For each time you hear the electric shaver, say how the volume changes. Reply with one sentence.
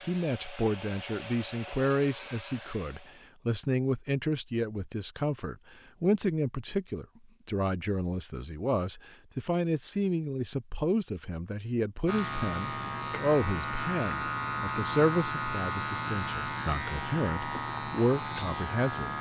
You can hear the electric shaver from 12.1 to 19.1 s, at a steady volume.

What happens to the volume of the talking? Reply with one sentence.
The volume of the talking stays about the same.